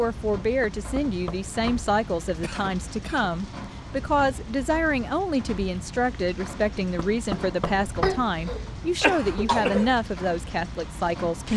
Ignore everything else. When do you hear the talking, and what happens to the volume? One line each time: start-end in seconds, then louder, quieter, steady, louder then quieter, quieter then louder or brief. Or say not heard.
0.0-11.5 steady.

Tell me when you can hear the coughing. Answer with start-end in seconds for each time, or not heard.
2.4-3.3, 8.0-9.9.